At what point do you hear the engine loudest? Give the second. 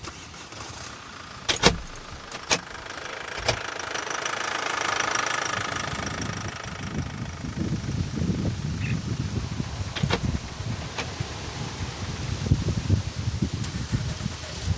5 s.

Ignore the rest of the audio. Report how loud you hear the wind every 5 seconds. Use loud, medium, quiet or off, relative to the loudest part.
quiet, loud, loud.